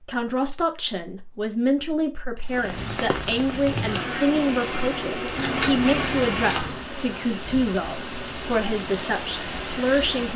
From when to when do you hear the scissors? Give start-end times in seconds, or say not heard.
5.3-6.8.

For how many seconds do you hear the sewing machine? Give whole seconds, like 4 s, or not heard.
4 s.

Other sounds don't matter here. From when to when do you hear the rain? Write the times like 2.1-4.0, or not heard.
2.4-10.3.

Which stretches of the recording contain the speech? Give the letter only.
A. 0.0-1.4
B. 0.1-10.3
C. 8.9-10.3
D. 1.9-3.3
B.